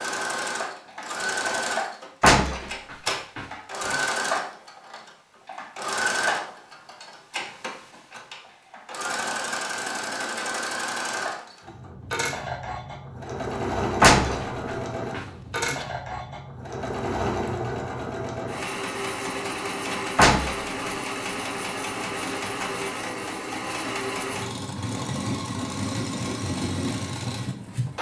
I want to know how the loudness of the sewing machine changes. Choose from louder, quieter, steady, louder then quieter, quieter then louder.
steady.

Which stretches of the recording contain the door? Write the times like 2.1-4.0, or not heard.
2.2-4.0, 14.0-14.4, 20.1-20.6.